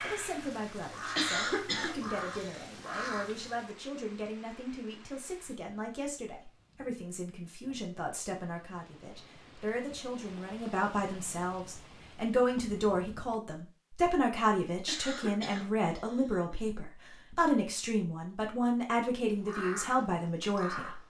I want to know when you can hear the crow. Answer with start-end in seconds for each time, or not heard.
0.0-3.5, 19.3-21.0.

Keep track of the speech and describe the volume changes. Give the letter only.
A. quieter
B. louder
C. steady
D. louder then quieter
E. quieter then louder
B.